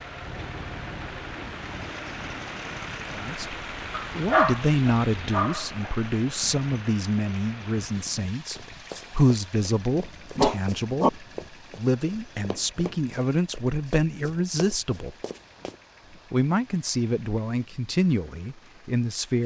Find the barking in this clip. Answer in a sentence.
The barking can be heard from 3.9 to 5.9 s and from 10.3 to 11.1 s.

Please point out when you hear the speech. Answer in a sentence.
You can hear the speech from 3.1 to 3.5 s, from 4.2 to 15.2 s and from 16.3 to 19.4 s.